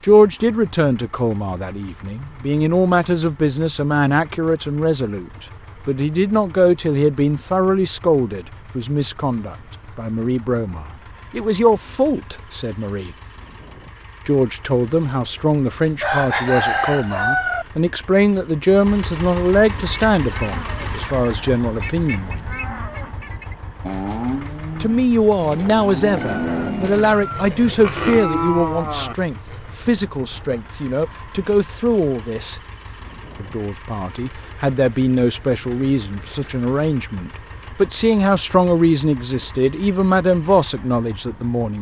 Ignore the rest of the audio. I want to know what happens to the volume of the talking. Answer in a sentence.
The volume of the talking stays about the same.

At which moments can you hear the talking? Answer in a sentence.
You can hear the talking from 0.0 to 13.1 s, from 14.2 to 22.5 s, from 24.8 to 32.6 s and from 33.4 to 41.7 s.